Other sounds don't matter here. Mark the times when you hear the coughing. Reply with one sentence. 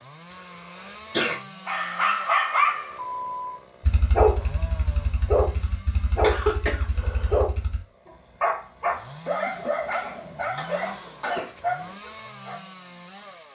You can hear the coughing from 0.8 to 1.4 s, from 6.2 to 7.4 s and from 9.2 to 11.5 s.